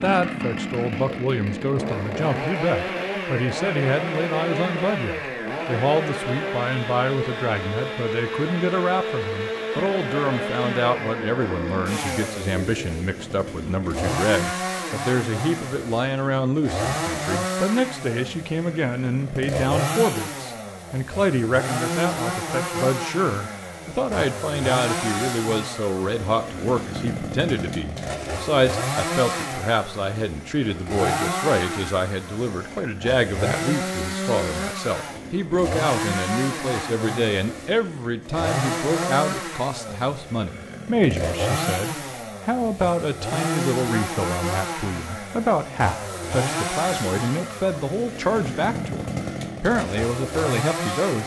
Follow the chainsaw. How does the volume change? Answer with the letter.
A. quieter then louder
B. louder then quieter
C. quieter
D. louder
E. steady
E.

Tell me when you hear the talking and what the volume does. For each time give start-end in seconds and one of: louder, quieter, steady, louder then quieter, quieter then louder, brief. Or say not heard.
0.0-51.2 steady.